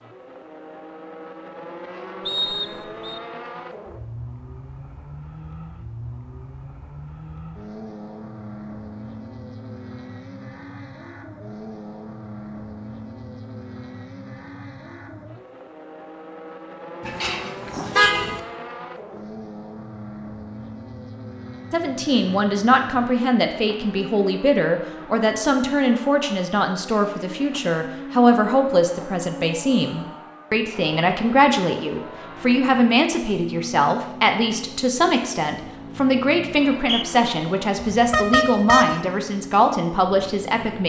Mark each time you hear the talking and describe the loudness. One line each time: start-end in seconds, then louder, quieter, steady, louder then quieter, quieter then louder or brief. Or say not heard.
21.7-40.8 steady.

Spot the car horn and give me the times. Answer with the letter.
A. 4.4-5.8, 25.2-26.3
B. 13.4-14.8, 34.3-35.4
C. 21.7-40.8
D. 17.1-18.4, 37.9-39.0
D.